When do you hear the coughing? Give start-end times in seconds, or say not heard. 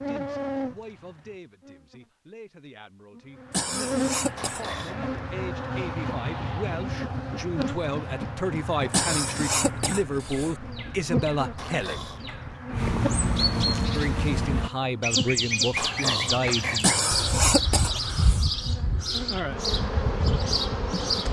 3.5-4.6, 8.9-10.5, 16.8-18.4.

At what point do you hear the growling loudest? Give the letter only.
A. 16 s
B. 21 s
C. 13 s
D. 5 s
A.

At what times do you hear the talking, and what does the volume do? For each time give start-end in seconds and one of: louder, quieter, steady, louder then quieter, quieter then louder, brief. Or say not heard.
0.0-12.1 louder
13.9-16.9 brief.